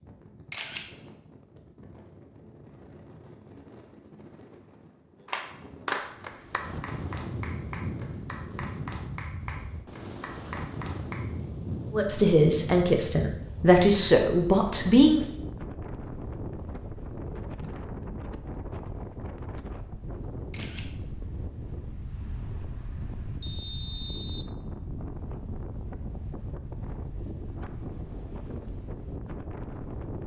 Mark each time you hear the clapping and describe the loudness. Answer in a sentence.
You can hear the clapping from 5.2 to 11.2 s, getting quieter.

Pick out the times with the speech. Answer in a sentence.
You can hear the speech from 11.9 to 15.2 s.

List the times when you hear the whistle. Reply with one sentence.
The whistle can be heard from 23.4 to 24.6 s.